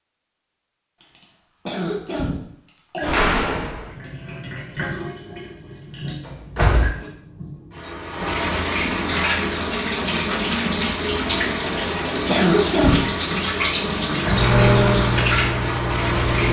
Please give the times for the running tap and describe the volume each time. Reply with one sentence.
You can hear the running tap from 3.0 to 16.4 s, getting louder.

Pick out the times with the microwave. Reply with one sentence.
You can hear the microwave from 14.3 to 16.4 s.